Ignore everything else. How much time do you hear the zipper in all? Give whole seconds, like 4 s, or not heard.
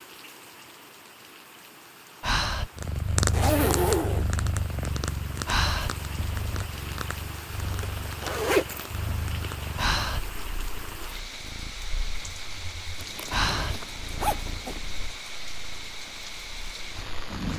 4 s.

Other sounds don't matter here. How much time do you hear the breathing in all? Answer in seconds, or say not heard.
2 s.